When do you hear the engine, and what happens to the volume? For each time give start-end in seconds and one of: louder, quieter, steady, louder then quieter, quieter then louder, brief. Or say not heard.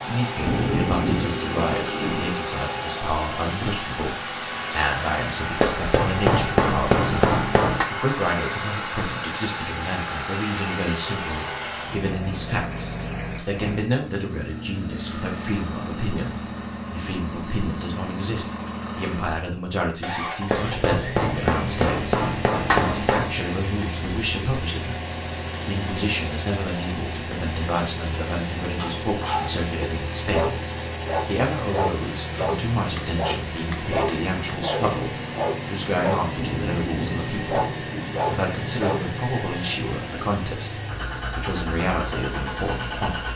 0.0-43.3 steady.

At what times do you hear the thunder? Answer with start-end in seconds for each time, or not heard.
0.5-2.4, 36.4-38.2.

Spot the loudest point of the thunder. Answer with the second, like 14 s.
1 s.